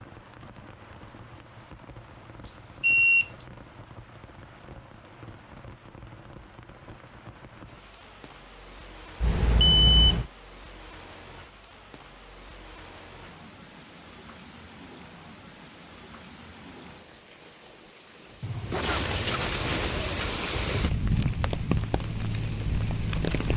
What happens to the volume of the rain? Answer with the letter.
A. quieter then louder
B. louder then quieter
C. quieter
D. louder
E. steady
D.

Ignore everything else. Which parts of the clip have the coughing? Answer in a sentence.
The coughing can be heard from 18.7 to 19.9 s.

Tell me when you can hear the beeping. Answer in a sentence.
You can hear the beeping from 2.5 to 3.5 s, from 9.2 to 10.2 s and from 18.4 to 20.3 s.